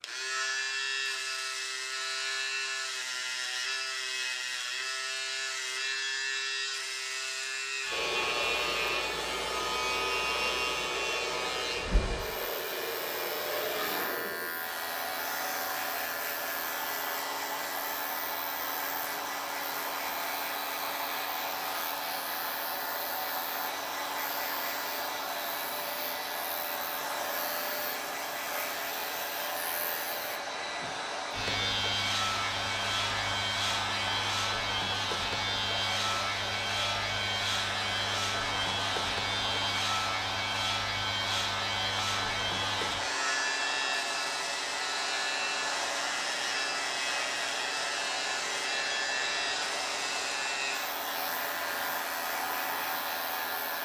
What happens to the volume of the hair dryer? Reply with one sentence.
The volume of the hair dryer stays about the same.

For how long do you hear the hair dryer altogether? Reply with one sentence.
The hair dryer can be heard for 46 seconds in total.